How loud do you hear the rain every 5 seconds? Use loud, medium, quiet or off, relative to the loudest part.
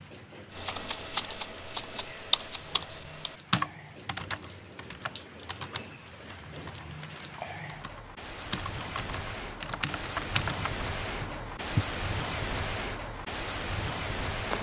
quiet, medium, loud.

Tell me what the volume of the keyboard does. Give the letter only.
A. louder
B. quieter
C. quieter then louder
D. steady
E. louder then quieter
C.